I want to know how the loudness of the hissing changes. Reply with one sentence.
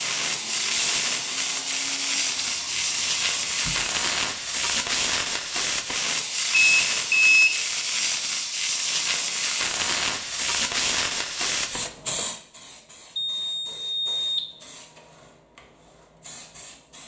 The volume of the hissing goes down.